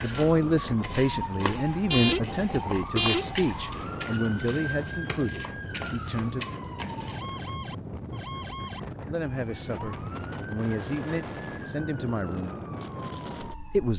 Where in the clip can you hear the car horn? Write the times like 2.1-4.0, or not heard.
1.9-3.4.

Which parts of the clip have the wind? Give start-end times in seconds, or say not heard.
0.0-13.8.